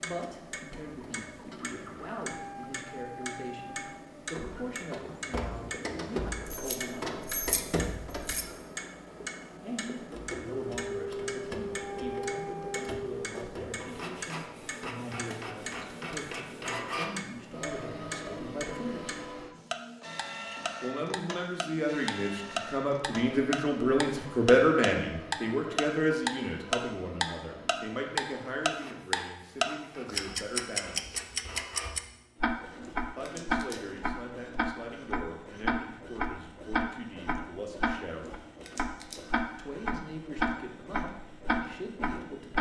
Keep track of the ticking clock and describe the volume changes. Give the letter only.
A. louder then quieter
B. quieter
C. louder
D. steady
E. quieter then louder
C.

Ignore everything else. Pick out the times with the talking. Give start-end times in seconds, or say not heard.
0.0-7.2, 9.6-19.1, 20.8-31.2, 33.1-38.3, 39.5-42.5.